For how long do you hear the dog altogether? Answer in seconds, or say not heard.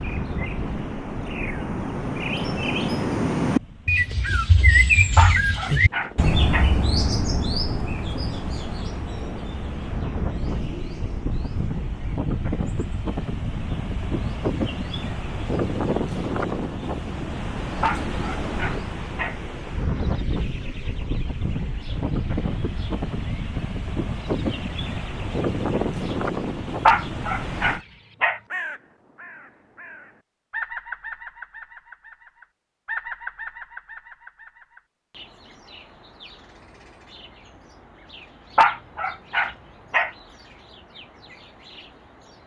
6 s.